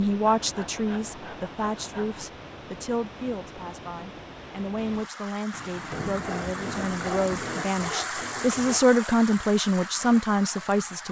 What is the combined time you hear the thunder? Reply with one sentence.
The thunder can be heard for 2 seconds in total.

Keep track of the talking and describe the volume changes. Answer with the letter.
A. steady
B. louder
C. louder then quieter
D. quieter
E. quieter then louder
B.